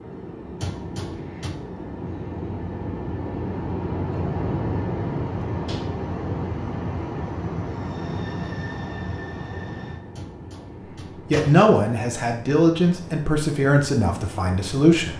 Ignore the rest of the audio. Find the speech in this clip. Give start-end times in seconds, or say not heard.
11.3-15.1.